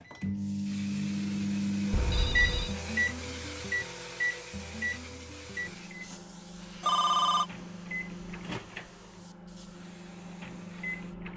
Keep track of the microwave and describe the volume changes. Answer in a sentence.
The loudness of the microwave goes down.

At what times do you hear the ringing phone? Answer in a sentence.
The ringing phone can be heard from 1.9 to 2.8 s and from 6.8 to 7.5 s.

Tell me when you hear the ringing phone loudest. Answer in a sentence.
The volume of the ringing phone peaks at 7 seconds.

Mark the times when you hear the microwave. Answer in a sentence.
The microwave can be heard from 0.0 to 11.3 s.